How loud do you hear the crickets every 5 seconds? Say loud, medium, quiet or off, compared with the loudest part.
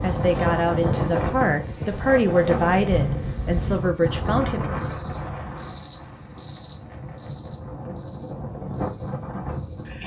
medium, loud.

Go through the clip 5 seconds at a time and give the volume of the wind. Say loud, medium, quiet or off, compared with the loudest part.
loud, medium.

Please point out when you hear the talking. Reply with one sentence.
The talking can be heard from 0.0 to 4.6 s.